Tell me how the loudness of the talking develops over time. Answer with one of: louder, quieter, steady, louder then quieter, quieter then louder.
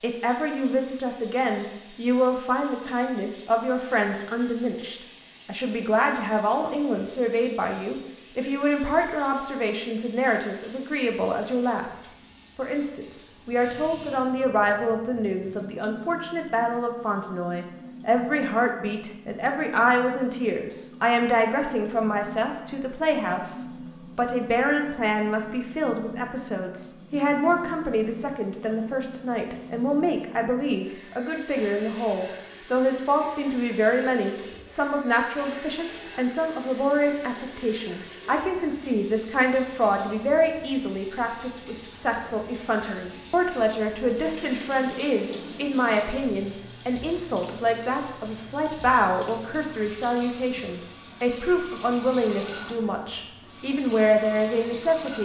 steady.